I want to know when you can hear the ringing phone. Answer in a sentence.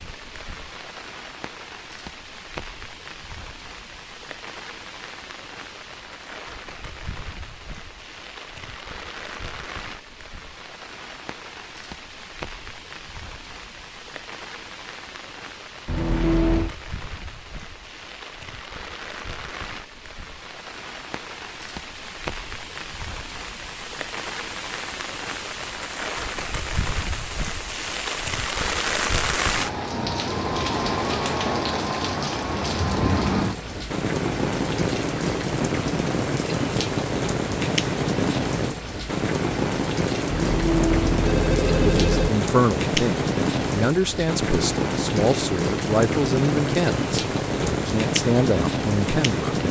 You can hear the ringing phone from 15.8 to 16.7 s and from 40.2 to 42.3 s.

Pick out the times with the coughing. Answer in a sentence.
You can't hear the coughing here.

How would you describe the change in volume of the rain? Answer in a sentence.
The volume of the rain goes up.